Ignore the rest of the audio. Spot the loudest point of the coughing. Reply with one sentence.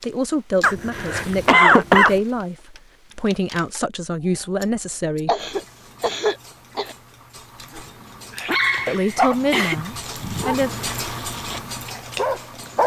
The loudest moment of the coughing is at 2 seconds.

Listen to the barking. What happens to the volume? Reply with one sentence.
The volume of the barking goes down, then up.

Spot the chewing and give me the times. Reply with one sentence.
The chewing can't be heard in this clip.